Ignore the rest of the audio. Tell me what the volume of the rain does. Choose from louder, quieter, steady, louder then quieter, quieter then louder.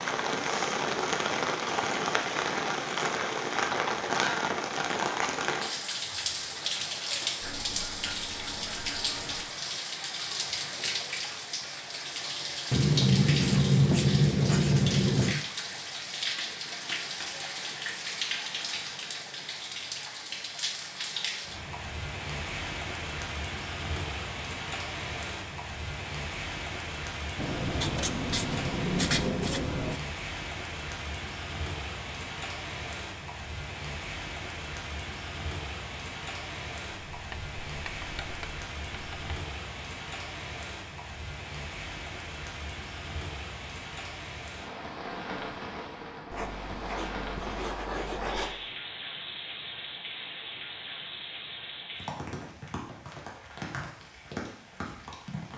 quieter.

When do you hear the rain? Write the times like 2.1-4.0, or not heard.
0.0-55.5.